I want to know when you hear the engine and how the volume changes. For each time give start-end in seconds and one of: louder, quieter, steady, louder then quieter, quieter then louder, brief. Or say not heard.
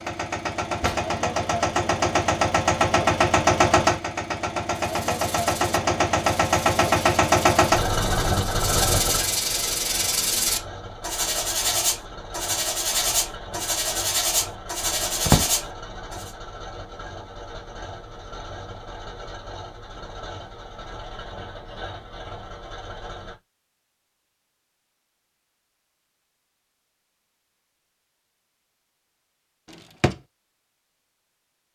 0.0-23.4 quieter.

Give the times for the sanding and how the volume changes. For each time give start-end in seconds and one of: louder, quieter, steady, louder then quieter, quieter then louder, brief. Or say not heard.
5.0-16.3 louder.